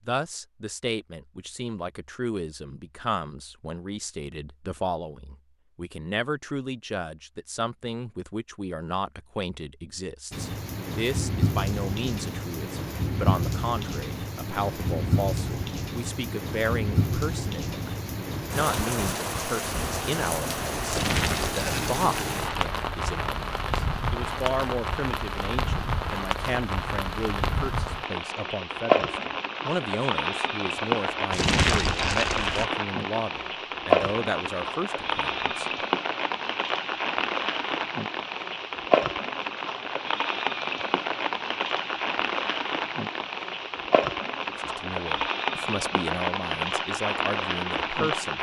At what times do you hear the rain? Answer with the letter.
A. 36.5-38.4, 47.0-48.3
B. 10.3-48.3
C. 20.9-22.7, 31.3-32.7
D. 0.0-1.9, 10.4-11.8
B.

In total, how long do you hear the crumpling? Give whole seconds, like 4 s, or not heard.
3 s.